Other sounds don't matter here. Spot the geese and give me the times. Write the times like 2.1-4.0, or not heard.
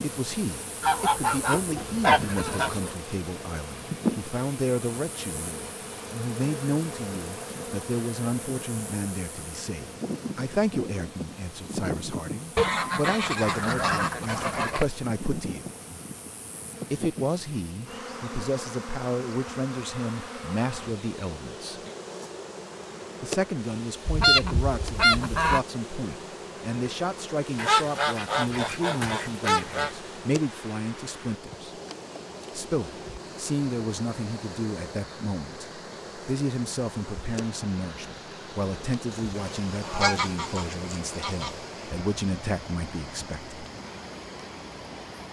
0.8-2.9, 12.6-14.8, 24.1-25.6, 27.6-29.9, 39.1-41.5.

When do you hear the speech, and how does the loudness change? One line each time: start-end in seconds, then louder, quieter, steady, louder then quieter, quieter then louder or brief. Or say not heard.
0.0-15.7 steady
16.9-21.8 steady
23.2-31.7 steady
32.5-43.5 steady.